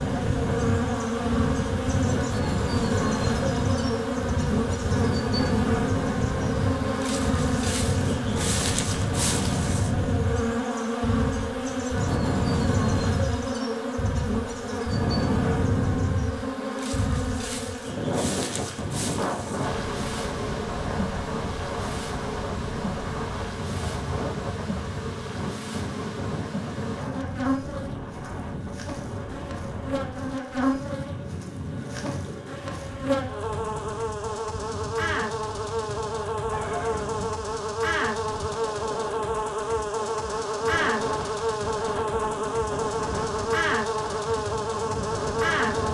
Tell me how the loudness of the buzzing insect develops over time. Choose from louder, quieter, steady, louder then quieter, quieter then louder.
quieter then louder.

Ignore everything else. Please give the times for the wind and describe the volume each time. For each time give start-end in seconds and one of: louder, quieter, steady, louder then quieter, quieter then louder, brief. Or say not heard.
0.0-45.8 quieter.